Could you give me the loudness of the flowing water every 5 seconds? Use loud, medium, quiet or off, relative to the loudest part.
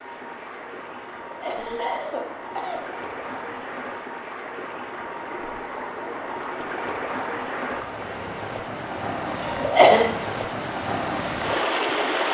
medium, medium, loud.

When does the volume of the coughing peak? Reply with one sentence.
The volume of the coughing peaks at 10 seconds.